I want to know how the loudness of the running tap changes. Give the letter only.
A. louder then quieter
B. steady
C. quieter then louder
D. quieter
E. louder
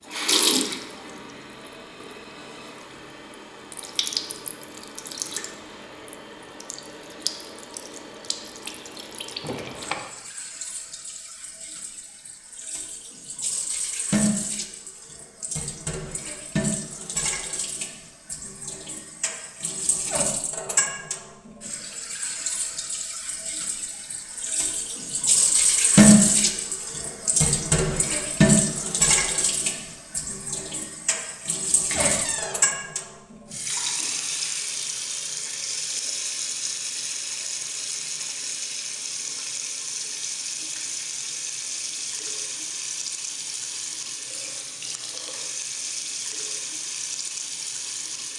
A.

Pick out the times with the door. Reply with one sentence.
The door can be heard from 9.4 to 10.0 s and from 31.9 to 32.6 s.